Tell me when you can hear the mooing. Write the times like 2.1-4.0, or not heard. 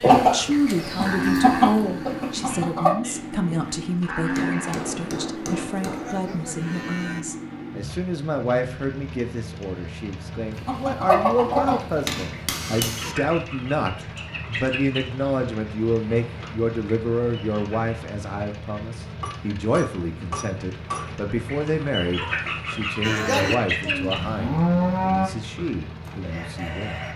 0.0-7.2, 23.0-25.3.